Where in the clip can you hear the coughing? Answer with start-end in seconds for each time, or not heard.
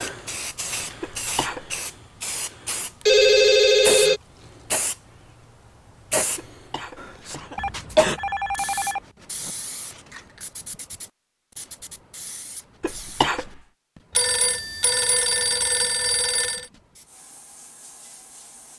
1.0-1.8, 6.3-8.2, 12.8-13.5.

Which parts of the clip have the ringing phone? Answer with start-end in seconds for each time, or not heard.
3.0-4.2, 7.5-9.6, 14.2-16.6.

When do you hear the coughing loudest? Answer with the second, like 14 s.
8 s.